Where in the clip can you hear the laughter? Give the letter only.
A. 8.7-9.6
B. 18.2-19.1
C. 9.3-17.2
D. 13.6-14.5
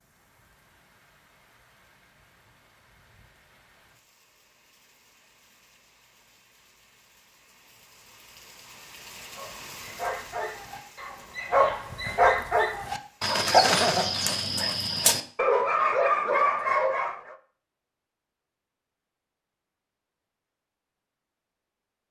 D.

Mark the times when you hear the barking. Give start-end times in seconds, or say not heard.
9.3-17.2.